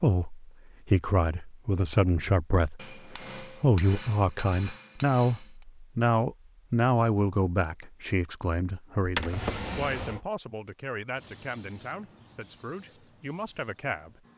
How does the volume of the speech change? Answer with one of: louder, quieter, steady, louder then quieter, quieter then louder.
quieter.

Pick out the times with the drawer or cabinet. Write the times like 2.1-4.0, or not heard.
9.0-10.2.